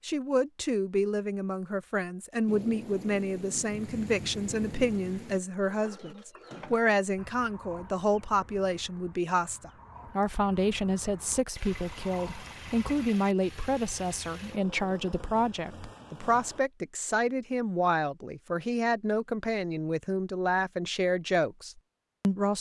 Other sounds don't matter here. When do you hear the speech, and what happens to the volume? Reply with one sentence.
You can hear the speech from 0.0 to 22.5 s, at a steady volume.